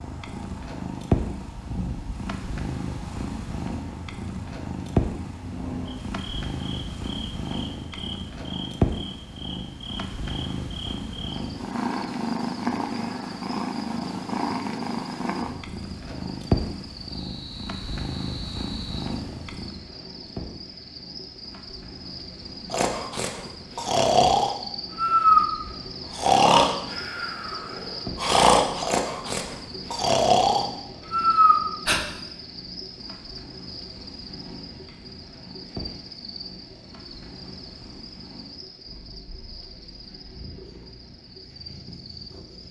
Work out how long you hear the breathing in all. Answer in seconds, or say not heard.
9 s.